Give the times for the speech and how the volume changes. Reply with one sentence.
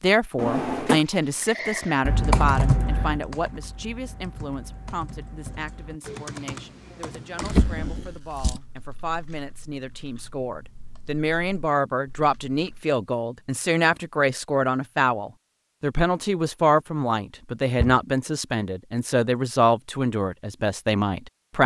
The speech can be heard from 0.0 to 21.6 s, getting quieter then louder.